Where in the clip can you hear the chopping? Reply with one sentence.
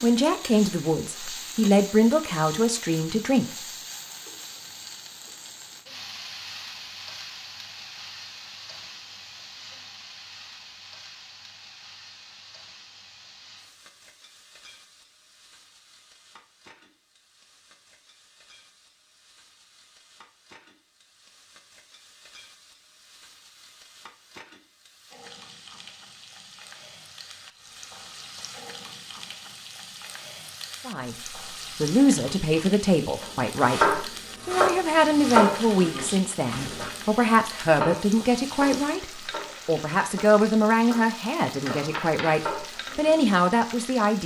The chopping can be heard from 33.2 to 43.2 s.